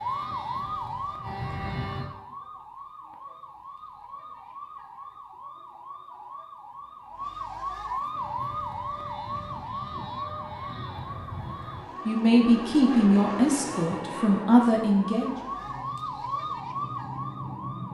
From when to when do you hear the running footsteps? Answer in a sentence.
The running footsteps can't be heard in this clip.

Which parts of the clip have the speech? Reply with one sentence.
The speech can be heard from 12.1 to 15.3 s.